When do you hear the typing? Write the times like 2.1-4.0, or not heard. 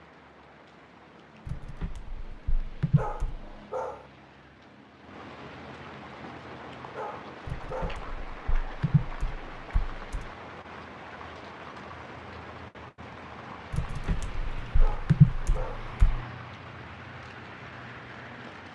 1.4-3.5, 7.5-10.3, 13.7-16.2.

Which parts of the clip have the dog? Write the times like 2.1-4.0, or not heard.
3.0-4.0, 7.0-8.1, 14.8-15.9.